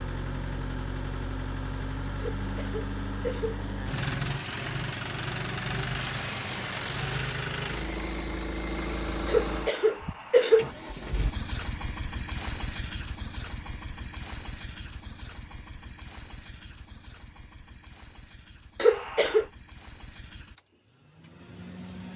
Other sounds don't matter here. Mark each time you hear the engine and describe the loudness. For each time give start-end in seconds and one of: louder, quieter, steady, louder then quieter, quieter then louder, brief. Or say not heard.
0.0-22.1 quieter.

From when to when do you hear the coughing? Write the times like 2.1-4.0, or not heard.
2.1-3.6, 9.2-10.7, 18.8-19.4.